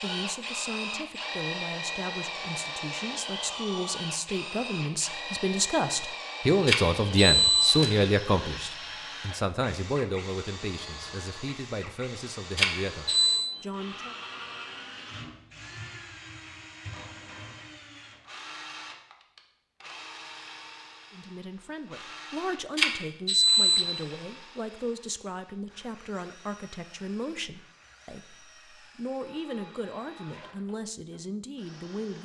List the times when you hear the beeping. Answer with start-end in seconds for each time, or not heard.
6.7-7.9, 12.6-13.5, 22.8-23.9.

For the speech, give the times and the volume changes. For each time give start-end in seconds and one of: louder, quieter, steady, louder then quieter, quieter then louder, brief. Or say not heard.
0.0-14.2 louder then quieter
21.1-32.2 steady.